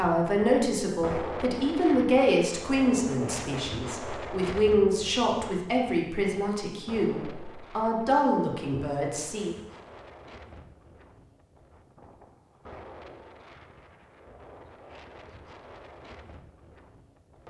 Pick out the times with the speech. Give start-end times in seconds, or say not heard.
0.0-9.6.